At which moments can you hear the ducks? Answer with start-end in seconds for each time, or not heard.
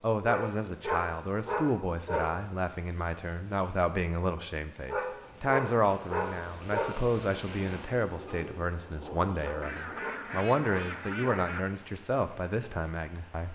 9.6-11.7.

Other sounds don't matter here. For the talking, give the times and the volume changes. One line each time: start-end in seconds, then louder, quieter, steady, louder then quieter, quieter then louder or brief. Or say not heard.
0.0-13.5 steady.